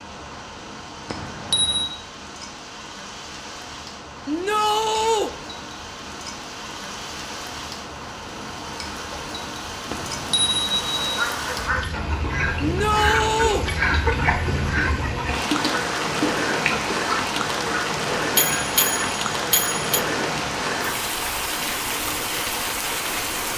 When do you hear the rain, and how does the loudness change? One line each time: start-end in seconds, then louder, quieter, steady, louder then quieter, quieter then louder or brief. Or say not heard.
0.0-23.5 louder.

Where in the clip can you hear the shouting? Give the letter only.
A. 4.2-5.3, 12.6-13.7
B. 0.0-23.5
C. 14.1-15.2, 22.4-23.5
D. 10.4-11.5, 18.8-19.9
A.